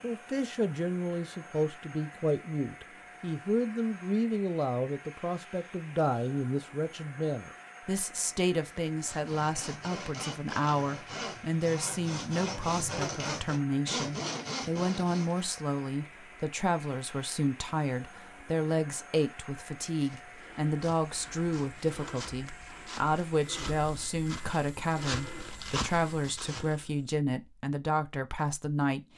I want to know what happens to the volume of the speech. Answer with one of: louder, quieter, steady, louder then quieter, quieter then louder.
steady.